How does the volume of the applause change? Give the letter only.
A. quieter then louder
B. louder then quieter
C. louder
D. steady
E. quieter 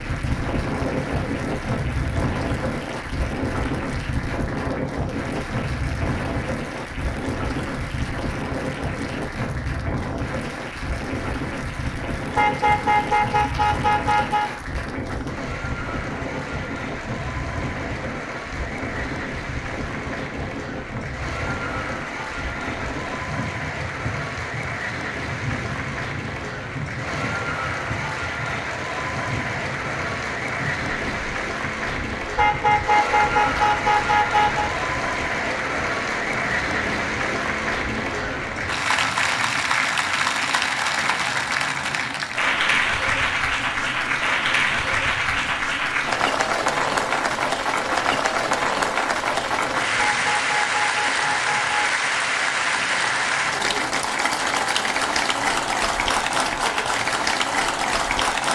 C.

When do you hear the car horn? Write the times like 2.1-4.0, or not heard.
12.3-14.5, 32.4-34.7, 50.2-51.8.